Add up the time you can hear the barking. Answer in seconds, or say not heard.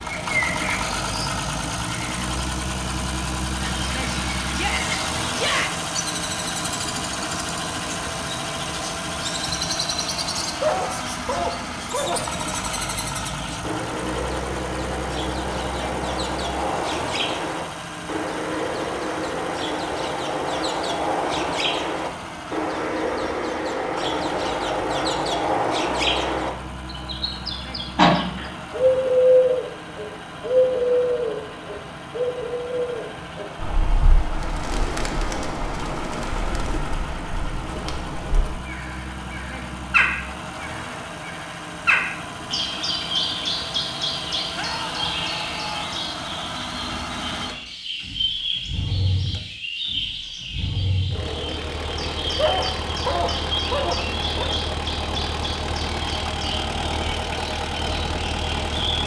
4 s.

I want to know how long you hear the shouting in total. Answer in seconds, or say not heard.
3 s.